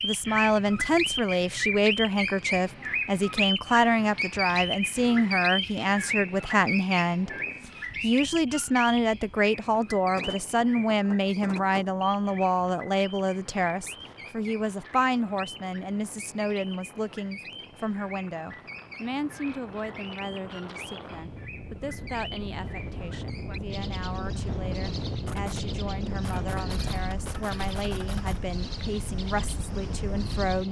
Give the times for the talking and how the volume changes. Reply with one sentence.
You can hear the talking from 0.0 to 30.6 s, getting quieter.